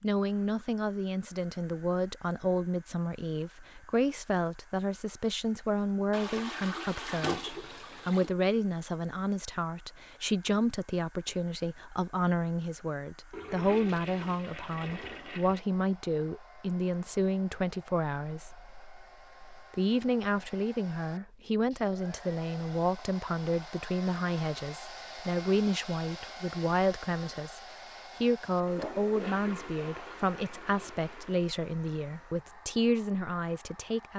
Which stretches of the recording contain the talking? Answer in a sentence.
The talking can be heard from 0.0 to 27.6 s and from 28.2 to 34.1 s.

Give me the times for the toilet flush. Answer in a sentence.
You can hear the toilet flush from 6.1 to 8.3 s, from 13.3 to 15.6 s and from 28.6 to 31.4 s.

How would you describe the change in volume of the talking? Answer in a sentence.
The loudness of the talking stays about the same.